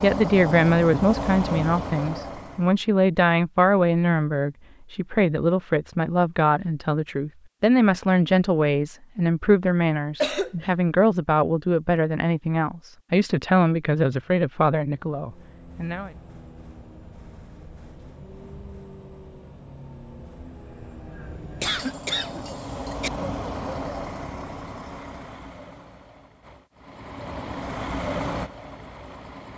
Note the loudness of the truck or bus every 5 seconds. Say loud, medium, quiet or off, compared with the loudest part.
loud, off, off, quiet, medium, medium.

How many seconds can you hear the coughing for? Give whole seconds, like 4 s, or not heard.
2 s.